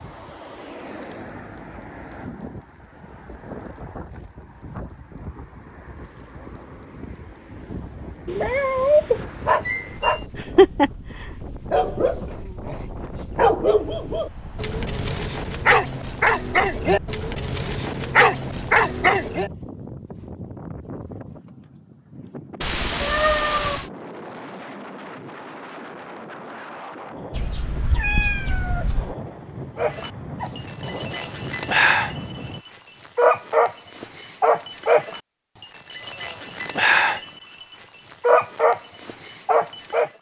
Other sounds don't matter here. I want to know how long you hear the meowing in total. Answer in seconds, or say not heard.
4 s.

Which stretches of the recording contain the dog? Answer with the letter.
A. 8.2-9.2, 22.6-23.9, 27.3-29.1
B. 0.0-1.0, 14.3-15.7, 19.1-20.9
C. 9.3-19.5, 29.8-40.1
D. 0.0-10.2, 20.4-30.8
C.